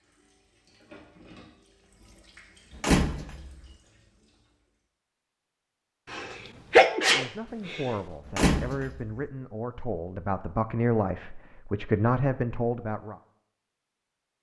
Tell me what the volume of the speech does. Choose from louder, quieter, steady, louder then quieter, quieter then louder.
louder.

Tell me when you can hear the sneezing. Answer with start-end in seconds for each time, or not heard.
6.1-8.0.